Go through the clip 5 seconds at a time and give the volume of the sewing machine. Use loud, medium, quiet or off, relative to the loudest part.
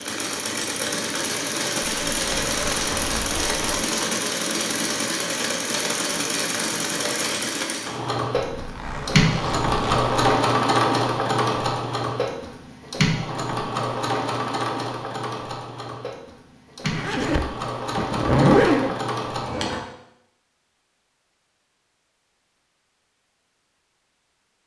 loud, loud, loud, medium, off.